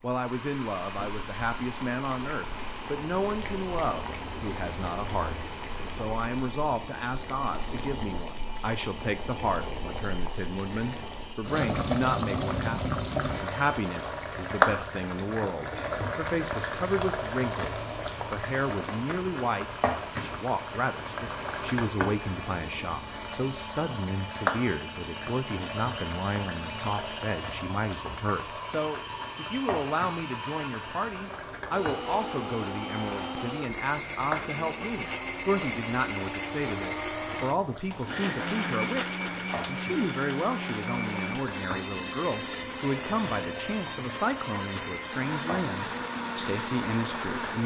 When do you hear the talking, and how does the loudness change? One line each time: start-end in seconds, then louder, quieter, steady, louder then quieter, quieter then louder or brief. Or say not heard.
0.0-47.6 steady.